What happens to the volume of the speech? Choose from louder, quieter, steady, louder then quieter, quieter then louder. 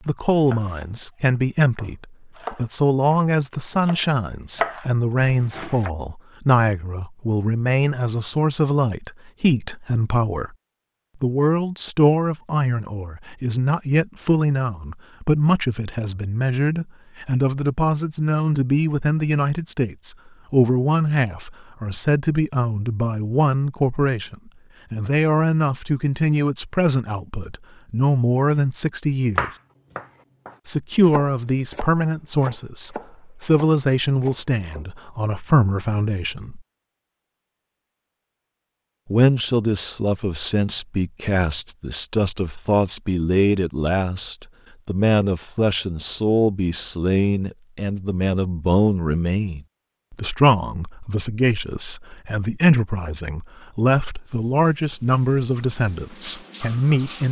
steady.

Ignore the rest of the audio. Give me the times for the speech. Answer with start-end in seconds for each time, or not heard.
0.1-10.6, 11.2-29.5, 30.6-36.6, 39.0-57.2.